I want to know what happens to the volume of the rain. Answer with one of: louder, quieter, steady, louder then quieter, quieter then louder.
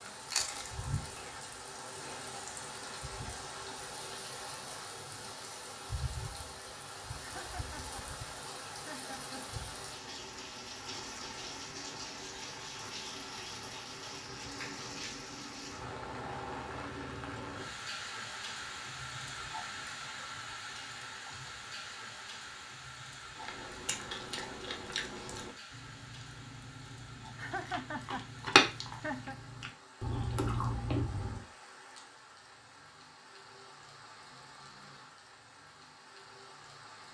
quieter.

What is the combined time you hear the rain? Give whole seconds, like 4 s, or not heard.
37 s.